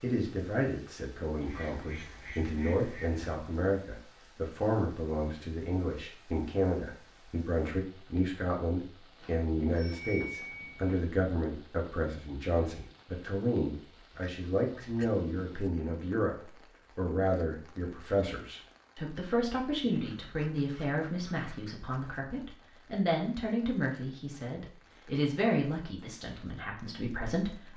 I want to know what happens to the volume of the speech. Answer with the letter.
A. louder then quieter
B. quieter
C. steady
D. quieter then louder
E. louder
C.